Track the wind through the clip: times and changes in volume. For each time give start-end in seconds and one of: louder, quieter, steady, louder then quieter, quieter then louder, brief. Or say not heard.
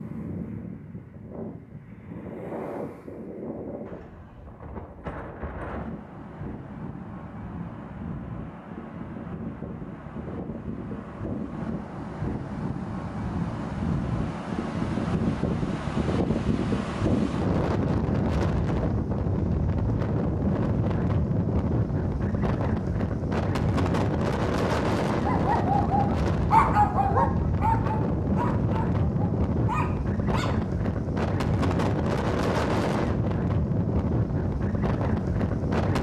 0.0-35.9 louder.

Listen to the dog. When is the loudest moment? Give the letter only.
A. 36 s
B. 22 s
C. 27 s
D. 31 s
C.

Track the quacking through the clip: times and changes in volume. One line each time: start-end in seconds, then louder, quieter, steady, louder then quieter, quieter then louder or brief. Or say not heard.
not heard.